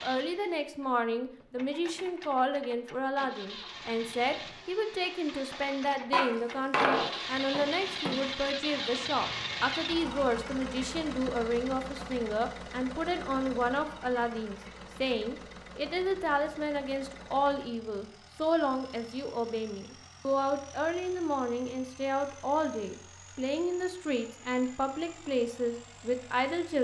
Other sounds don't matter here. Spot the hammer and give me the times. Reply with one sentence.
The hammer can be heard from 6.1 to 8.2 s.